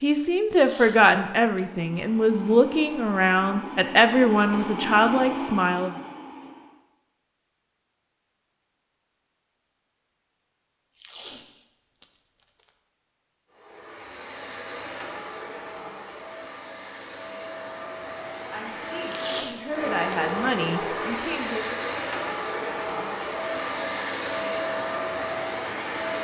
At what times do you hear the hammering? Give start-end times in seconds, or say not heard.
not heard.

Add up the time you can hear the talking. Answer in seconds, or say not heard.
9 s.